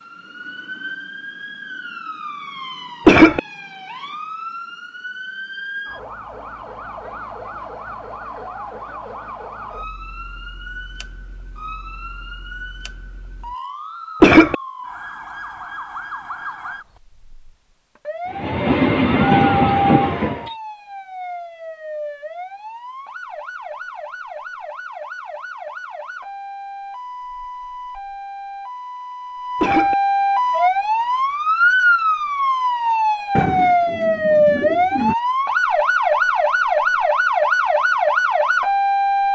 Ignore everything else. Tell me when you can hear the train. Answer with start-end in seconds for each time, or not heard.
18.3-20.6.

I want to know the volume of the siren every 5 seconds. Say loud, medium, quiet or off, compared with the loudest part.
quiet, quiet, quiet, quiet, quiet, medium, loud, loud.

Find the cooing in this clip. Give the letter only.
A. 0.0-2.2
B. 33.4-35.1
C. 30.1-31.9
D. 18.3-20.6
B.